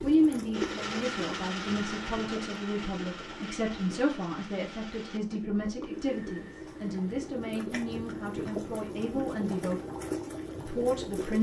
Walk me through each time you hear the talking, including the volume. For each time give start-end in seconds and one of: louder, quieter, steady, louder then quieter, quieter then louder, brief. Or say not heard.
0.0-9.8 steady
10.7-11.3 brief.